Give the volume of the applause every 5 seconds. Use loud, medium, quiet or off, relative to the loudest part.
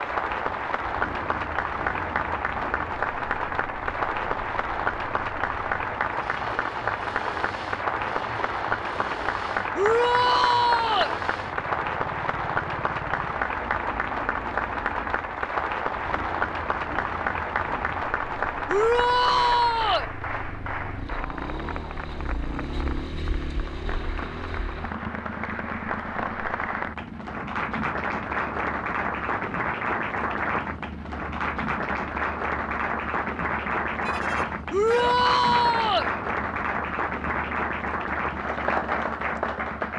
loud, loud, loud, loud, medium, loud, loud, loud.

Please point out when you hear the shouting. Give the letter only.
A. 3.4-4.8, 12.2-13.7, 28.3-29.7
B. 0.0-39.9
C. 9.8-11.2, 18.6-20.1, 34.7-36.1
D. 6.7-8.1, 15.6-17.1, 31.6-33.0
C.